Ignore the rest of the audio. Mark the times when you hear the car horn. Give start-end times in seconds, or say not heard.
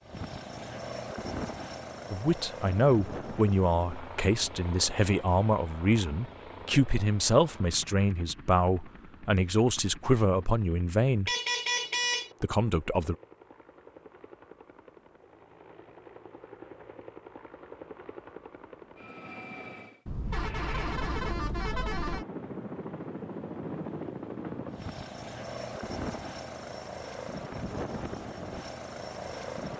11.2-12.3, 20.1-22.2.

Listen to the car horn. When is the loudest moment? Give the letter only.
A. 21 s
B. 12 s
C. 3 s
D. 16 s
B.